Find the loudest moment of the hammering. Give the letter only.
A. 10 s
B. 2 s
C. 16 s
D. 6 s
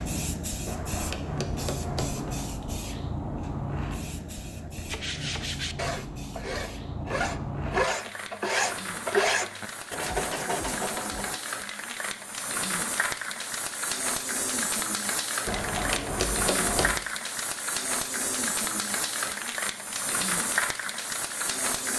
C.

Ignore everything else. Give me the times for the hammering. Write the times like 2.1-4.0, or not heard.
0.7-2.5, 15.4-16.9.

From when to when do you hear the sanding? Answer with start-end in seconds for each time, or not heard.
4.8-11.4.